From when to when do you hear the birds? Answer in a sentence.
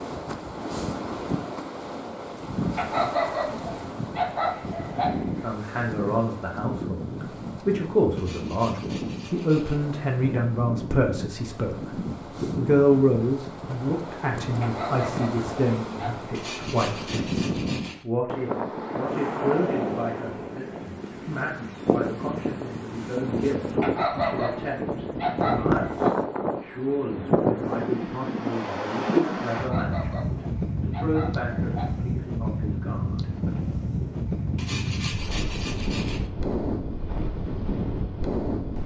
The birds can't be heard in this clip.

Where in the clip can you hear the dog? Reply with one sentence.
The dog can be heard from 2.8 to 5.5 s, from 14.6 to 16.2 s, from 23.8 to 26.1 s and from 29.6 to 32.2 s.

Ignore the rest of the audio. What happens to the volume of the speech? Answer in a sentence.
The volume of the speech goes down.